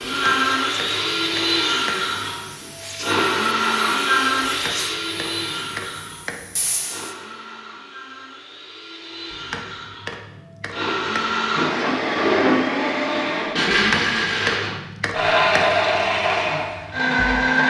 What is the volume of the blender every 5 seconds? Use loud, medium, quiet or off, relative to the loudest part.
loud, quiet, loud, loud.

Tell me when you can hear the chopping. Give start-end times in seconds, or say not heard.
0.0-2.4, 4.4-6.7, 9.3-11.6, 13.7-15.8.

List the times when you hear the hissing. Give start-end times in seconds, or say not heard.
0.0-7.2.